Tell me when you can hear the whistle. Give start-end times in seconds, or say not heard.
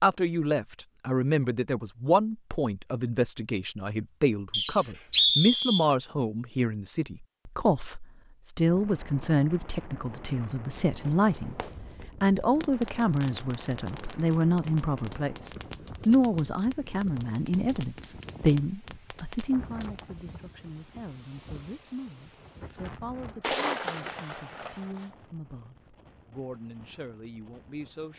4.5-5.8.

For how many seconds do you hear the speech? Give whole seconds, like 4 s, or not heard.
28 s.